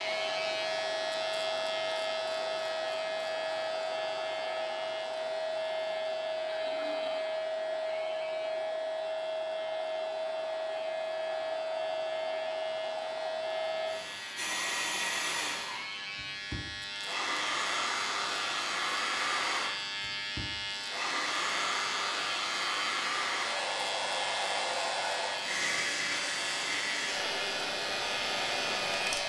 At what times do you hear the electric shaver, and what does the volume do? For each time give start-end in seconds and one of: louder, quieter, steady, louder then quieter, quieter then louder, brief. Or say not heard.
0.0-29.2 quieter then louder.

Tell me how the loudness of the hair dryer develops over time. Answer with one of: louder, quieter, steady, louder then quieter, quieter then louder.
steady.